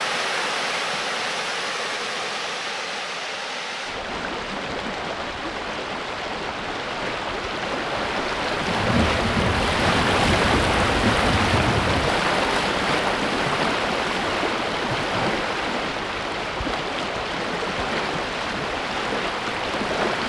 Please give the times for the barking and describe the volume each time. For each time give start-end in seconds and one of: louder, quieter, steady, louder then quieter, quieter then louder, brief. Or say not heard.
not heard.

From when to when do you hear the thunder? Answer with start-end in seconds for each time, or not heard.
8.6-12.1.